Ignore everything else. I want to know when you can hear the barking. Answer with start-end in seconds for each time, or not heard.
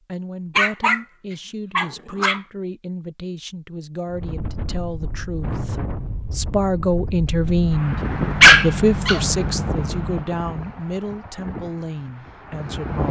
0.6-1.0, 1.8-2.4, 8.4-9.2.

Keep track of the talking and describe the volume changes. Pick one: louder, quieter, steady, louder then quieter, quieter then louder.
louder then quieter.